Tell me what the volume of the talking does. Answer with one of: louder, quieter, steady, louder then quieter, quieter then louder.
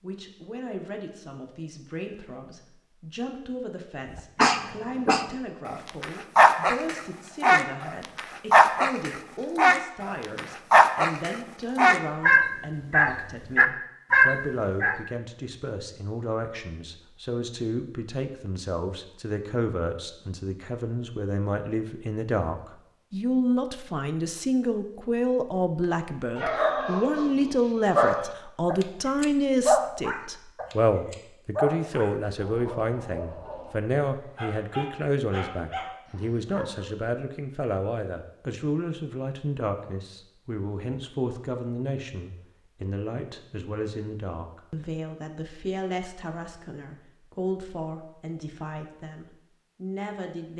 louder then quieter.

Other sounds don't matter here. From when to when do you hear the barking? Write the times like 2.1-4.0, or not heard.
4.2-15.0, 26.4-36.9.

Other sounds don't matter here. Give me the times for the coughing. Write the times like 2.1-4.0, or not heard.
not heard.